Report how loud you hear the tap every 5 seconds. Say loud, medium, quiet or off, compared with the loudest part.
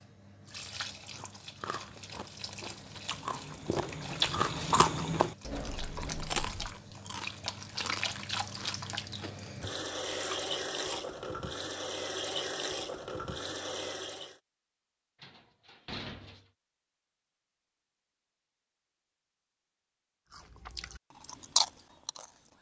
medium, loud, loud, off, off.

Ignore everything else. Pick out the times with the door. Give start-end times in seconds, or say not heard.
5.4-6.7, 15.2-16.5.